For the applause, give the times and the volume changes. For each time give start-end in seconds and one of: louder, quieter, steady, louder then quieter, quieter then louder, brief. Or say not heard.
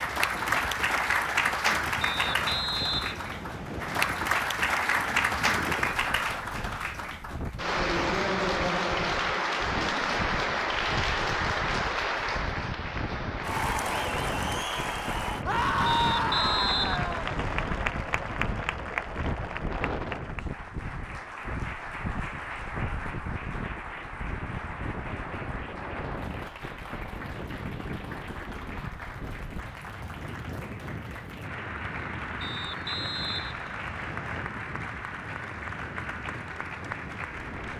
0.0-37.7 quieter.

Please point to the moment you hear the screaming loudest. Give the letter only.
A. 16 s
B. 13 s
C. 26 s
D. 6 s
A.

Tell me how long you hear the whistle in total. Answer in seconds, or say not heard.
6 s.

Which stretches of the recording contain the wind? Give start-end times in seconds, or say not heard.
0.0-37.7.